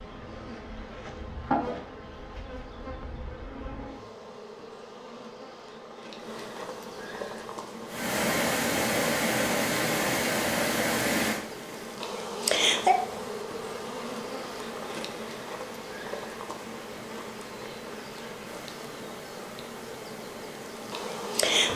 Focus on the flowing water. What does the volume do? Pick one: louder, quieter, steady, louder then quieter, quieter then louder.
quieter.